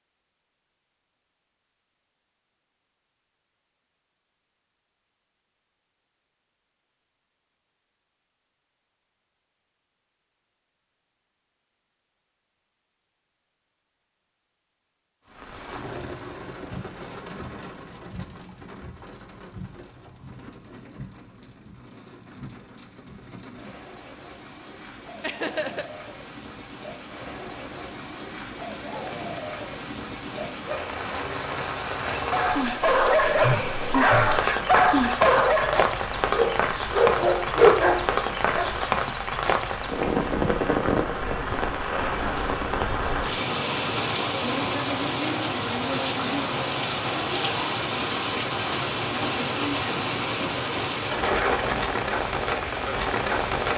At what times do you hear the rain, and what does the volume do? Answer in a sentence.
You can hear the rain from 15.2 to 53.7 s, getting louder.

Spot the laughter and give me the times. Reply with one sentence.
The laughter can be heard from 25.2 to 25.9 s.